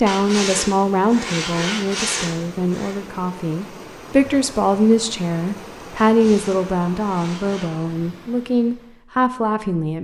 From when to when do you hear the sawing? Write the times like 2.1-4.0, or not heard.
0.1-3.0, 6.0-7.7.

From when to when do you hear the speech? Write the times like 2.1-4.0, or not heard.
0.0-9.9.